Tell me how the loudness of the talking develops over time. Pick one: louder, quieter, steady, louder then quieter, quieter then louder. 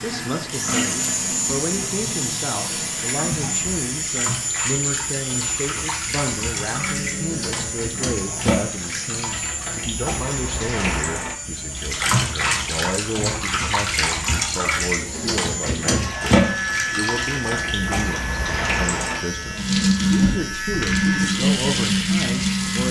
steady.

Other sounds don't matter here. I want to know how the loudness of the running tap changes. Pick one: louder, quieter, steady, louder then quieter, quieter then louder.
louder.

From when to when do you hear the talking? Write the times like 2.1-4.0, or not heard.
0.0-22.8.